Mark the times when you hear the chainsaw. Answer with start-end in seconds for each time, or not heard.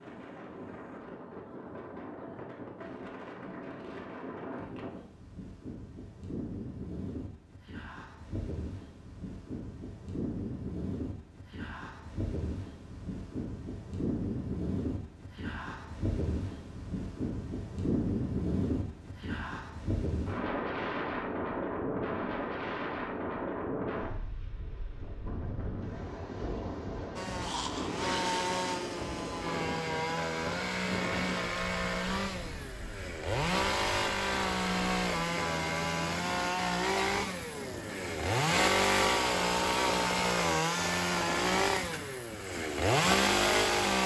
27.1-44.0.